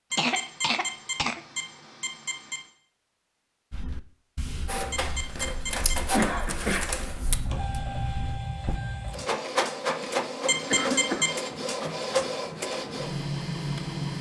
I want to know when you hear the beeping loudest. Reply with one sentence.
The volume of the beeping peaks at 11 seconds.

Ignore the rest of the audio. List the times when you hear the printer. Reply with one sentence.
You can hear the printer from 4.7 to 14.1 s.